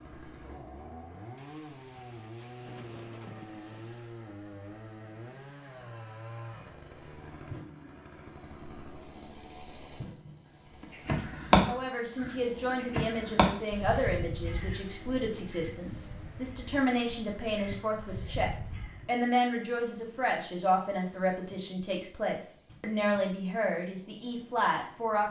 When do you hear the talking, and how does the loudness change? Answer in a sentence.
You can hear the talking from 11.7 to 25.2 s, at a steady volume.